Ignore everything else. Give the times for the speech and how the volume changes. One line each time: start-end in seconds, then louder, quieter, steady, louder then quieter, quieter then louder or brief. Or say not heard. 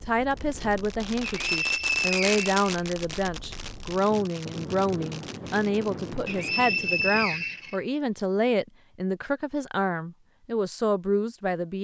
0.0-11.7 steady.